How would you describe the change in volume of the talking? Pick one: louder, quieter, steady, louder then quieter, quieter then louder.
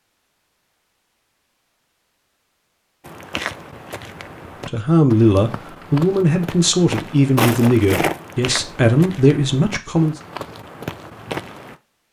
quieter then louder.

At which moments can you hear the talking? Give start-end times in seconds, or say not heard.
4.7-10.2.